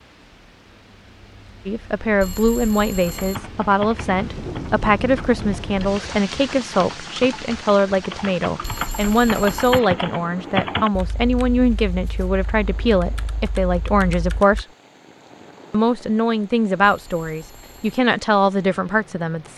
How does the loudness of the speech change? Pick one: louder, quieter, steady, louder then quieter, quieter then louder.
steady.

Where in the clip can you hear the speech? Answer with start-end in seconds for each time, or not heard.
1.6-14.7, 15.7-19.5.